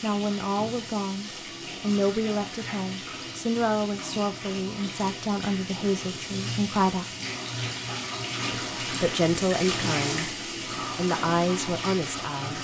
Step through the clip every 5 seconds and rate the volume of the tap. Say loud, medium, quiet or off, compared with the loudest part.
medium, loud, loud.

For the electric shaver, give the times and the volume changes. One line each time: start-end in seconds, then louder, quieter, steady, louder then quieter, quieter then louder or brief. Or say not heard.
not heard.